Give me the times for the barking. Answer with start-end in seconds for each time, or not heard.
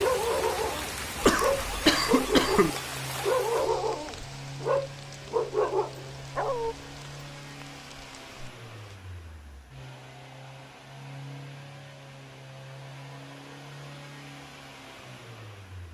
0.0-6.8.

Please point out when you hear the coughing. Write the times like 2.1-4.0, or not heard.
1.2-2.7.